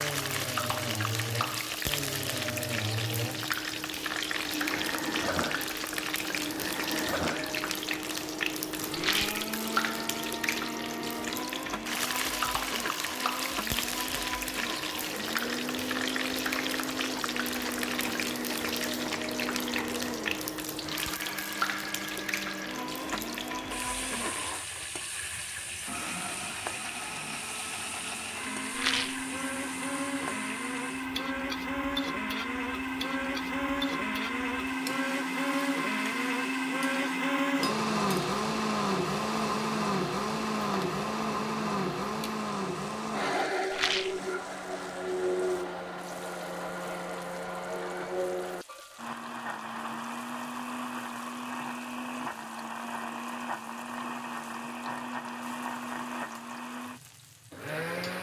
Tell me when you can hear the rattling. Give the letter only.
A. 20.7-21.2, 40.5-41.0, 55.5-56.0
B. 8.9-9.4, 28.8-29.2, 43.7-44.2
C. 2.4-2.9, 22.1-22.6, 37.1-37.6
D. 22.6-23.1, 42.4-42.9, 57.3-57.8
B.